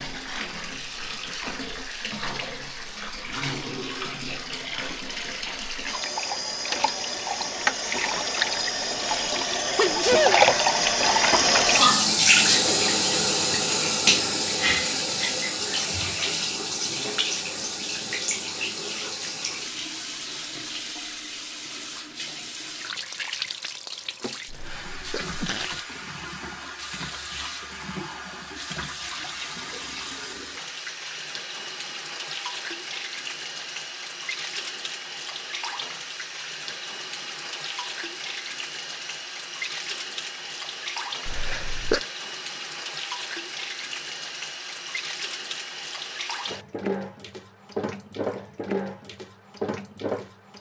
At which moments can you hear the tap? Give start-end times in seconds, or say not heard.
0.0-50.5.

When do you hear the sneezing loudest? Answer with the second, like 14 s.
10 s.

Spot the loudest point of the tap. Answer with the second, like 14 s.
12 s.